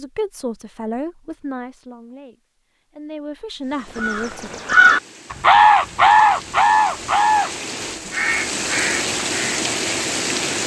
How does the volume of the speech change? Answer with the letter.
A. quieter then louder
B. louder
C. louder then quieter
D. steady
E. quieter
A.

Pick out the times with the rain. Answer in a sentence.
The rain can be heard from 3.6 to 10.6 s.